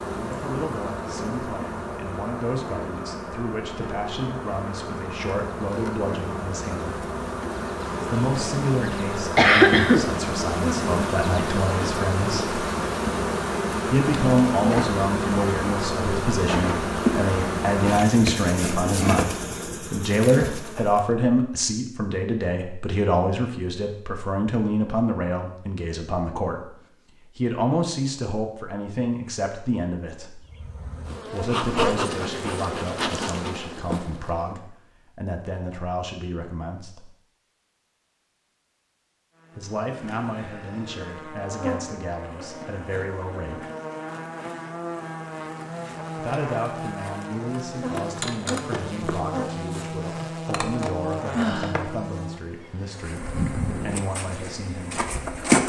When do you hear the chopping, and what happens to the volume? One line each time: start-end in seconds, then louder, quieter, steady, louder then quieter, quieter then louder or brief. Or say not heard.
not heard.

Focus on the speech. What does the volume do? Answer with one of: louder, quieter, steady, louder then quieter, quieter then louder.
louder then quieter.